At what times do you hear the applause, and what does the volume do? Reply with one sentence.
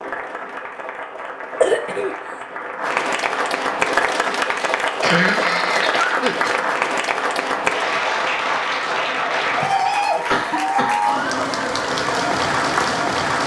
The applause can be heard from 0.0 to 13.4 s, getting louder.